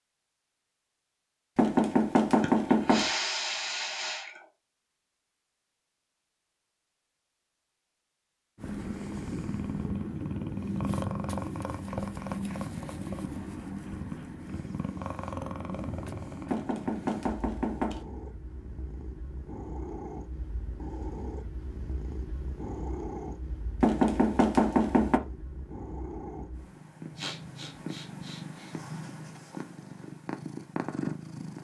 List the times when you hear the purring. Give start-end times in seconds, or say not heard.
8.6-31.5.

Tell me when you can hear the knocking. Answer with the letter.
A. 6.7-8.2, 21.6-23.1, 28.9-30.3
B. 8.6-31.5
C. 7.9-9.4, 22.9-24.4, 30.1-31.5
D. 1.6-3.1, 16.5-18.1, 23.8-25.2
D.